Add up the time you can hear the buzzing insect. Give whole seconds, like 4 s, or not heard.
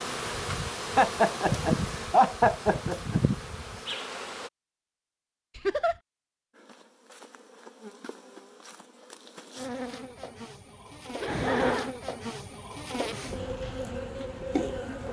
13 s.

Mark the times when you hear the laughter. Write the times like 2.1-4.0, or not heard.
0.9-3.2, 5.5-6.0, 11.2-11.9.